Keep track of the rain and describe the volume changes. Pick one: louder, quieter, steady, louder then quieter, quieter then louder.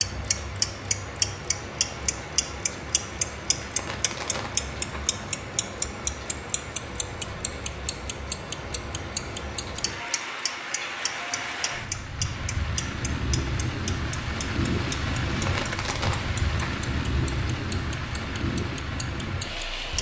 louder.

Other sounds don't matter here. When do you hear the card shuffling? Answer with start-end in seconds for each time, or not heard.
3.8-5.1, 15.4-16.8.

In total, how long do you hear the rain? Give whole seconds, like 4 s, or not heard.
20 s.